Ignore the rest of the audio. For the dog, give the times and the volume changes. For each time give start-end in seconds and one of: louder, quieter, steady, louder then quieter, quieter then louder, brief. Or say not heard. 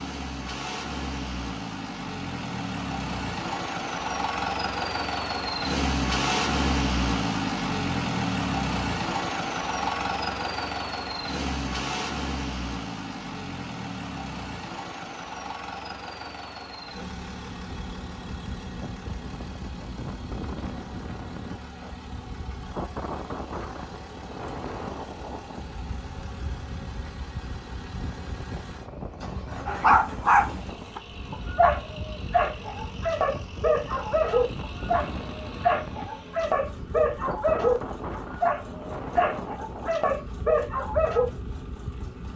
29.6-41.3 steady.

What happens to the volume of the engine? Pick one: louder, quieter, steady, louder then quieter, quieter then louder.
quieter.